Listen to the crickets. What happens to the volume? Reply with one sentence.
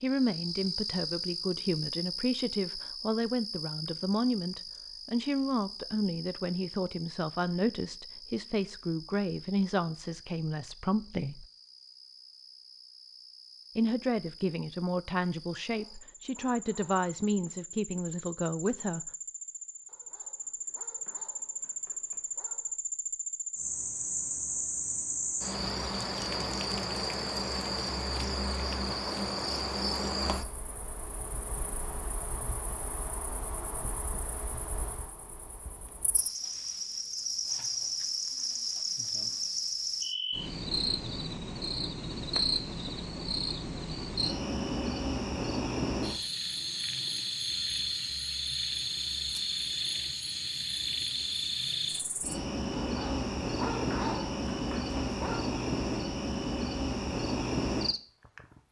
The volume of the crickets goes up.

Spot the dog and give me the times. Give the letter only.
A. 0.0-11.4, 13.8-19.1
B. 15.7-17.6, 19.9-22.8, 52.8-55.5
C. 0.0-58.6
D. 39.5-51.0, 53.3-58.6
B.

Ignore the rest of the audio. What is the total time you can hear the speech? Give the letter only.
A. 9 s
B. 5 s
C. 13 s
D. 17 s
D.